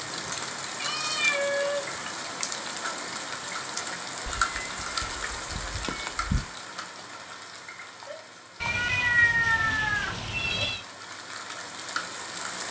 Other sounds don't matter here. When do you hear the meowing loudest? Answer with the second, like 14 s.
9 s.